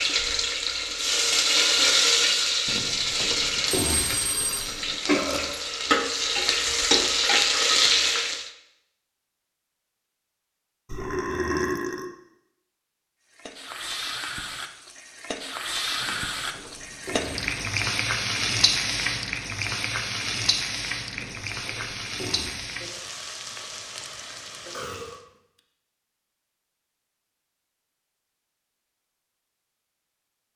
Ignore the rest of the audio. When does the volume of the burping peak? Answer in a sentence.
The volume of the burping peaks at 12 seconds.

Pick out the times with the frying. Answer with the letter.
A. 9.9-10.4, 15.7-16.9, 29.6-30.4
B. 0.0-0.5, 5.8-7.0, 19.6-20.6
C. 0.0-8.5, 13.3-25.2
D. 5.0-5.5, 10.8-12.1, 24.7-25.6
C.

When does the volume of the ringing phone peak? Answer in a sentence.
The volume of the ringing phone peaks at 4 seconds.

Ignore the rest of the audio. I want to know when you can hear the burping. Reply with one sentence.
The burping can be heard from 5.0 to 5.5 s, from 10.8 to 12.1 s and from 24.7 to 25.6 s.